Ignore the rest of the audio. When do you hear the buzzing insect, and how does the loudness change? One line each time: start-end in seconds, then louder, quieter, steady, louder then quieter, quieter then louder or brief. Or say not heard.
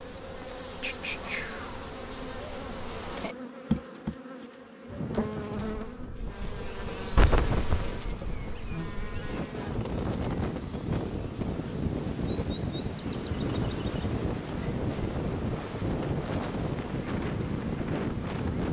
0.0-18.6 quieter.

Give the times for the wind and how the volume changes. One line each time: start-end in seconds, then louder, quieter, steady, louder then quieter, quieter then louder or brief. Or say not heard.
4.8-18.6 louder.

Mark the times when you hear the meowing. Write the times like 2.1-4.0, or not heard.
7.2-8.1.